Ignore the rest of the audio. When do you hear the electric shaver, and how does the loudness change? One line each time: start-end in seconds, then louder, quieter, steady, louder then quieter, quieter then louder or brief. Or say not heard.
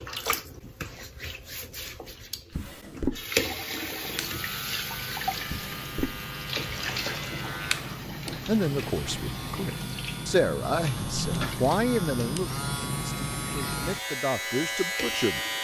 3.9-15.5 louder.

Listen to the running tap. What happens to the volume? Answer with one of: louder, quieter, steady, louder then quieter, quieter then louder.
louder then quieter.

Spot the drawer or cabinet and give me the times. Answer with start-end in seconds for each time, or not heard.
2.5-3.2, 5.5-6.2, 11.0-11.4.